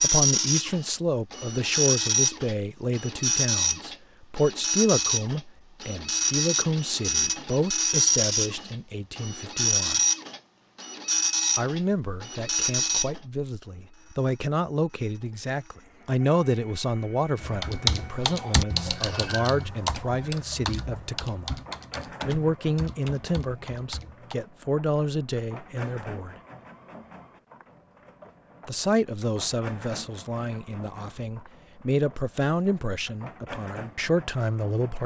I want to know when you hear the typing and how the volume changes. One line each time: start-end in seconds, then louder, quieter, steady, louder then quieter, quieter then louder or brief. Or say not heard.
17.4-24.4 quieter.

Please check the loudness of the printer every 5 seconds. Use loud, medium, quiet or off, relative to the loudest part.
loud, loud, loud, quiet, quiet, quiet, quiet.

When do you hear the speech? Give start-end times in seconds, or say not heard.
0.0-10.0, 11.6-21.6, 22.2-26.4, 28.6-35.0.